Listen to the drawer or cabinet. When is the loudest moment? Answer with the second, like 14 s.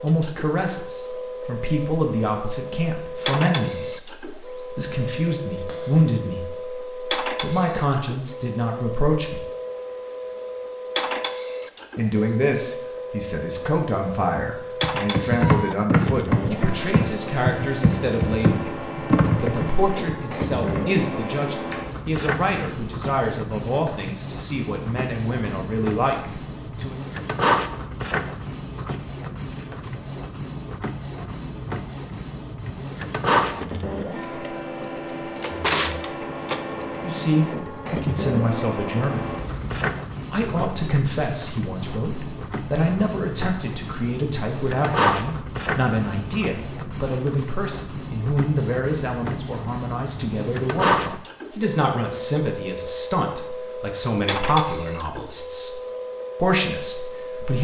36 s.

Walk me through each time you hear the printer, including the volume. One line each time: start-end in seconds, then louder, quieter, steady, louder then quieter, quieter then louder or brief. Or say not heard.
0.0-57.5 steady.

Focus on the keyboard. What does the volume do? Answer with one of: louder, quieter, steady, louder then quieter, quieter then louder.
quieter.